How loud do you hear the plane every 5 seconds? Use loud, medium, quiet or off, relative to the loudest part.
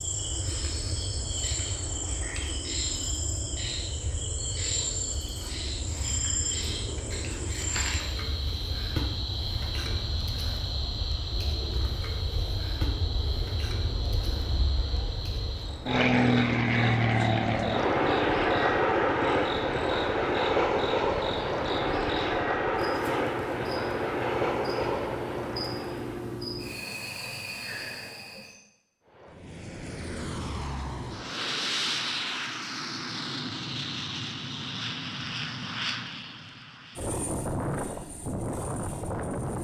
quiet, quiet, quiet, loud, loud, quiet, medium, medium.